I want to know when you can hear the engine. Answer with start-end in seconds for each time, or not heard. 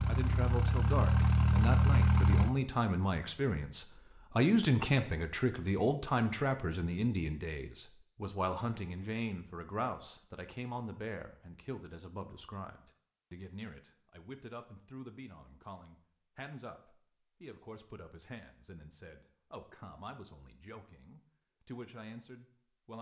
0.0-2.5.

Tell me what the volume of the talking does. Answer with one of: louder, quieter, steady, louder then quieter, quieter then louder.
quieter.